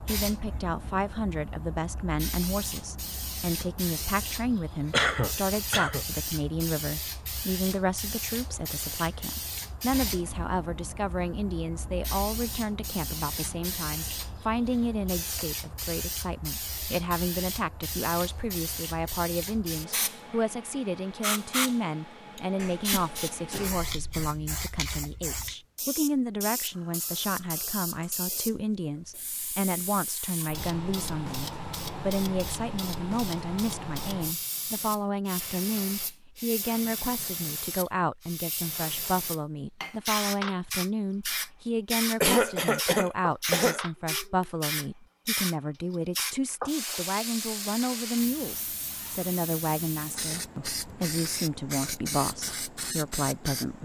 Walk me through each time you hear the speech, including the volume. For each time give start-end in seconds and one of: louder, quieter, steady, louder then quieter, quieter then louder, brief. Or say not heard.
0.1-53.8 steady.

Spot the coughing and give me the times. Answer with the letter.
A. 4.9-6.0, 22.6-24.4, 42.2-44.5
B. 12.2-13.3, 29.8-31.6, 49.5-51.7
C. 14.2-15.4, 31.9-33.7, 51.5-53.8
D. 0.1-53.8
A.